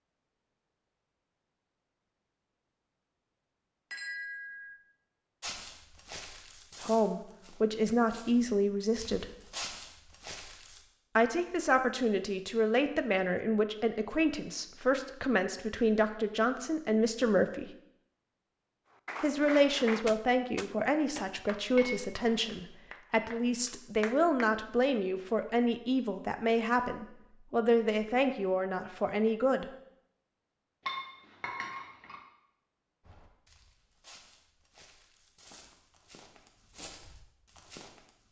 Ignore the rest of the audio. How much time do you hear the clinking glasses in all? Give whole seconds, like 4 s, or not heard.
3 s.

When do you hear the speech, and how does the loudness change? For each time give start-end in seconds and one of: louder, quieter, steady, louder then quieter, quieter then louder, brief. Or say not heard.
6.8-9.2 brief
11.2-17.7 steady
19.2-29.6 steady.